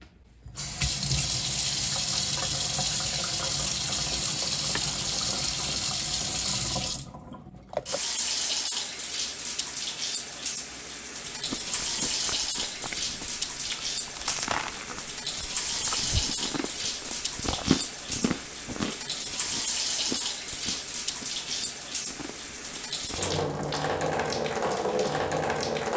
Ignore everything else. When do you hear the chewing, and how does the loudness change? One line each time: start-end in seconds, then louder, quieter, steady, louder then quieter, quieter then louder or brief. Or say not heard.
11.2-23.4 louder then quieter.